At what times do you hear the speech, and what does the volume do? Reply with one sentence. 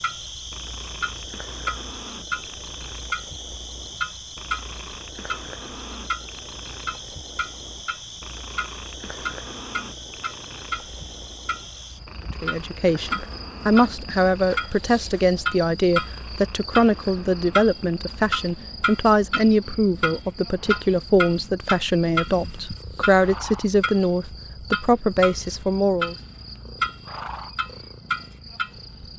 The speech can be heard from 12.4 to 26.1 s, at a steady volume.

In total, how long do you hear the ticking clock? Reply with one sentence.
You can hear the ticking clock for 29 seconds altogether.